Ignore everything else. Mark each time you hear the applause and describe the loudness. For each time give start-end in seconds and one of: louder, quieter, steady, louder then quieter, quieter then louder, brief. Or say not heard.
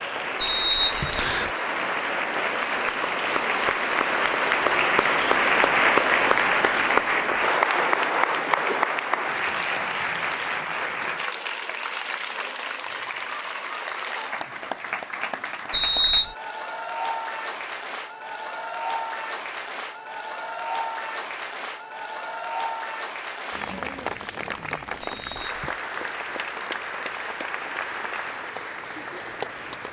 0.0-29.8 quieter.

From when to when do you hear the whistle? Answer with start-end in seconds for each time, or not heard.
0.3-1.5, 15.7-16.4, 25.0-25.8.